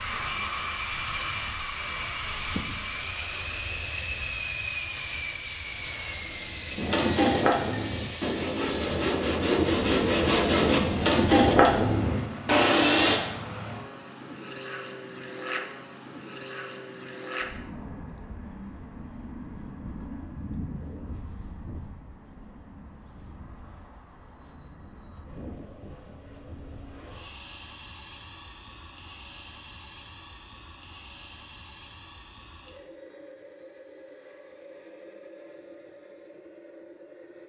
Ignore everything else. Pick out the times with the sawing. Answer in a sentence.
You can hear the sawing from 6.8 to 13.2 s.